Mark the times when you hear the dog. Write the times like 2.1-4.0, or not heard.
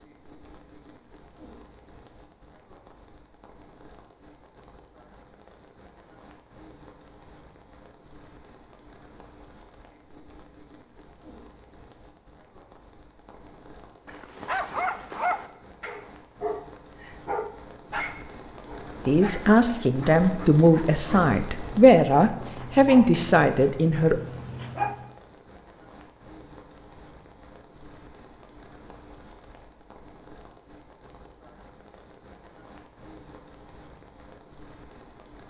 14.1-25.1.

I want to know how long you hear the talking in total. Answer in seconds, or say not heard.
5 s.